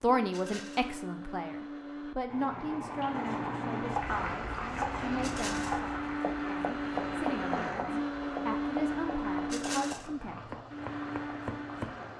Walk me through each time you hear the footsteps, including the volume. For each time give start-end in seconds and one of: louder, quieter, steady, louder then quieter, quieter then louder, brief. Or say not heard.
not heard.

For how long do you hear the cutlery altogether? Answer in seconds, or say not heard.
not heard.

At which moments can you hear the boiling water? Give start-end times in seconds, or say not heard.
2.2-12.1.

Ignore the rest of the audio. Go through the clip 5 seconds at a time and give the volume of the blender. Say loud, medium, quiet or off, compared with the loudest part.
medium, loud, medium.